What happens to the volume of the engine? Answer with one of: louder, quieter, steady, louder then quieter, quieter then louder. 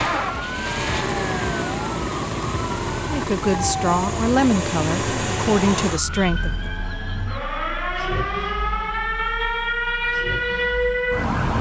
quieter.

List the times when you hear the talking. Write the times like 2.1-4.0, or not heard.
3.0-6.7.